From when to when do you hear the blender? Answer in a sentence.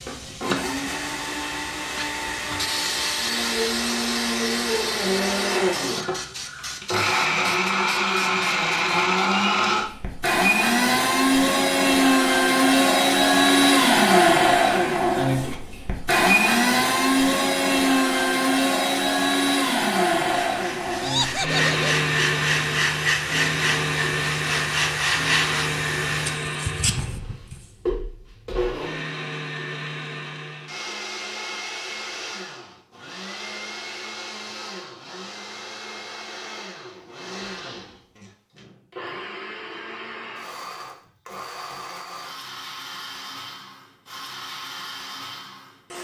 The blender can be heard from 0.0 to 45.9 s.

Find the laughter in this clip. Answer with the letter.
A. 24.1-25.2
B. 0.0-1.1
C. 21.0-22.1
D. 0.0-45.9
C.